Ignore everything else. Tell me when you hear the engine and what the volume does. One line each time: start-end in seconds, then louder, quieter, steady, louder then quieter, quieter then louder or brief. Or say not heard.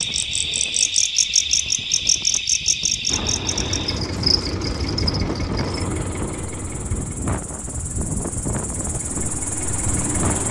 3.0-10.4 quieter then louder.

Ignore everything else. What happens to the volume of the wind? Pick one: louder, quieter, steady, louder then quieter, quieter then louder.
louder.